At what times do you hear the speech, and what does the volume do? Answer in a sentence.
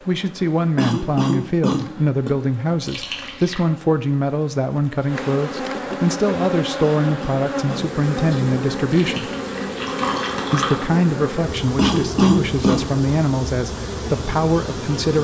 The speech can be heard from 0.1 to 9.3 s, at a steady volume; and from 10.5 to 15.1 s, at a steady volume.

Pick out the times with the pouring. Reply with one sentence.
You can hear the pouring from 2.8 to 3.6 s and from 8.9 to 10.8 s.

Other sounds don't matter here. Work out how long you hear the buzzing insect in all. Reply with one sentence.
You can hear the buzzing insect for 15 seconds altogether.